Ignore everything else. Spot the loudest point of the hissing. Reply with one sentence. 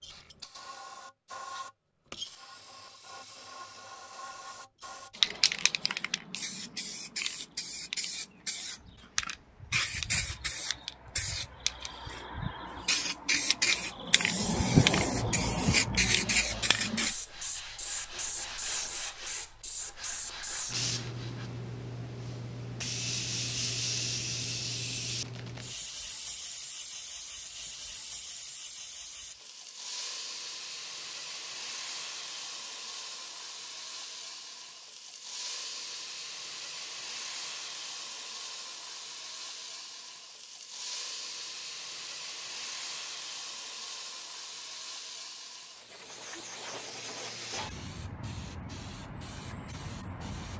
The volume of the hissing peaks at 15 seconds.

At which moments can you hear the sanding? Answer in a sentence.
You can hear the sanding from 16.4 to 21.5 s.